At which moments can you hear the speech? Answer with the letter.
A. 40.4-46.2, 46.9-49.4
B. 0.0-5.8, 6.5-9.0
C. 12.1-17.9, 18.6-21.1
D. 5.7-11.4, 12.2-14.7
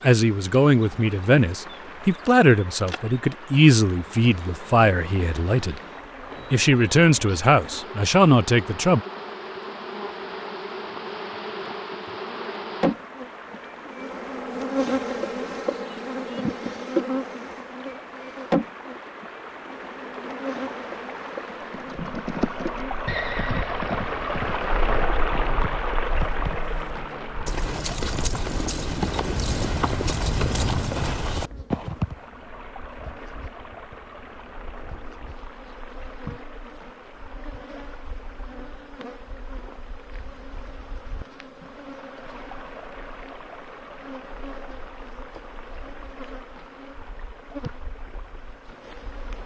B.